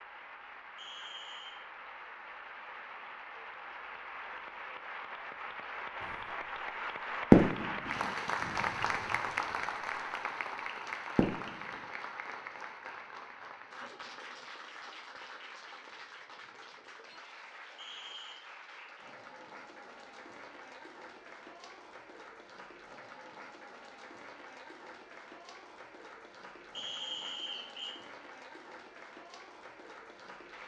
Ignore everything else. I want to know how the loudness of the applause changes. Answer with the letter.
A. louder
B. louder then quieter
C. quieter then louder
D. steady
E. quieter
B.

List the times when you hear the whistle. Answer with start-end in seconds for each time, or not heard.
0.8-1.6, 17.8-18.4, 26.7-27.9.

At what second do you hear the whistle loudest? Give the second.
27 s.